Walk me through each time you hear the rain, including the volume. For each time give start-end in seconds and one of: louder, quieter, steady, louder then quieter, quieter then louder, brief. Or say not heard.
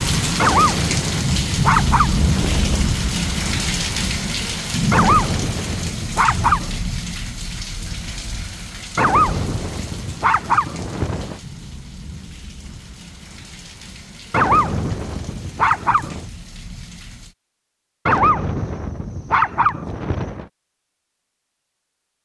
0.0-17.4 quieter.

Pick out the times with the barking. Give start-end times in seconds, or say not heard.
0.3-2.9, 4.9-6.8, 8.9-11.4, 14.3-16.2, 18.1-20.4.